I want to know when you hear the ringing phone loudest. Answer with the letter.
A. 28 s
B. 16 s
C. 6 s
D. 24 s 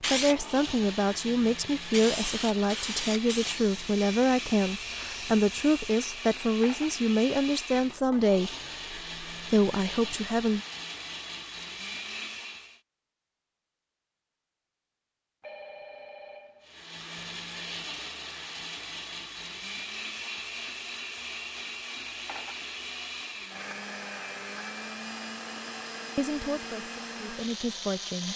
B.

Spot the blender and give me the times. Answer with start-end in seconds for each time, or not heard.
0.1-12.8, 16.6-28.3.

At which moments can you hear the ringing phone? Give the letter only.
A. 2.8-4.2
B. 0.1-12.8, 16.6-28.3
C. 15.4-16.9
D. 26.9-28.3
C.